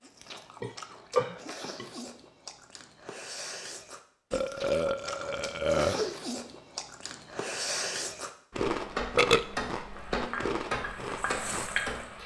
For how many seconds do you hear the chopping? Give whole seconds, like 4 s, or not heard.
3 s.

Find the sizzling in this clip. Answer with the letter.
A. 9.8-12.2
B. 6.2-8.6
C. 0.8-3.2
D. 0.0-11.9
A.